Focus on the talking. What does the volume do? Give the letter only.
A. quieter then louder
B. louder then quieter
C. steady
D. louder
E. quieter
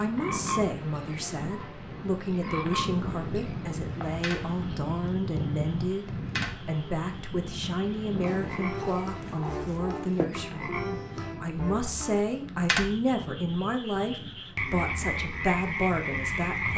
C.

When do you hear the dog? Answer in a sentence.
The dog can be heard from 8.2 to 10.2 s.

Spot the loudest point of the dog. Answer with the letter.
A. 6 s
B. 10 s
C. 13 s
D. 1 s
B.